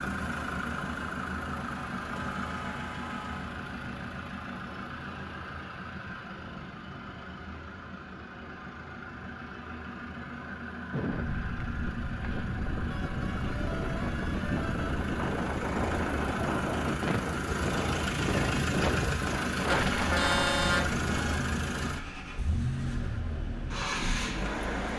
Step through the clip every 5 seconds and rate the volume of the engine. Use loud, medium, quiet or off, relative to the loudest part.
loud, medium, medium, loud, loud.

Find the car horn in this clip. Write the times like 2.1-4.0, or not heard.
2.1-3.5, 12.9-14.9, 19.7-21.4.